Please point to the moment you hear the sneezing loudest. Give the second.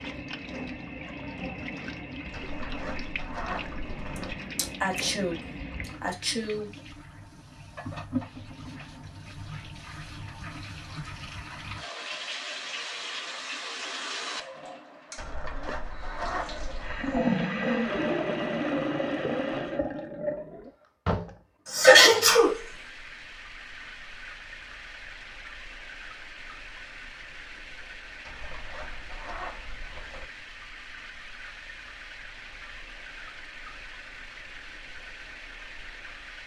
22 s.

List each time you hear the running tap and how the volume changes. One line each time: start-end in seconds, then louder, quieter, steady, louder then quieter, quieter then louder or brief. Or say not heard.
0.0-36.4 louder then quieter.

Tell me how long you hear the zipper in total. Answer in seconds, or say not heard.
6 s.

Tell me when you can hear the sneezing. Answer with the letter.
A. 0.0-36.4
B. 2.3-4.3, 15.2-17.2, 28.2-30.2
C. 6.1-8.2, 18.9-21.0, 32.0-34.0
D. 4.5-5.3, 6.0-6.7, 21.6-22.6
D.